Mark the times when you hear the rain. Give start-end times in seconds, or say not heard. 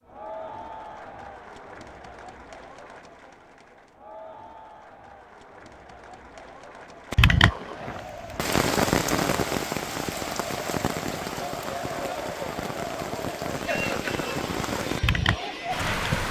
7.1-16.2.